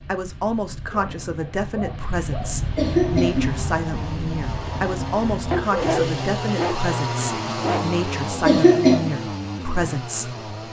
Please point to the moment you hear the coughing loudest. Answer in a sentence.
The volume of the coughing peaks at 9 seconds.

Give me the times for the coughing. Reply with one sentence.
You can hear the coughing from 2.8 to 3.6 s and from 8.4 to 9.1 s.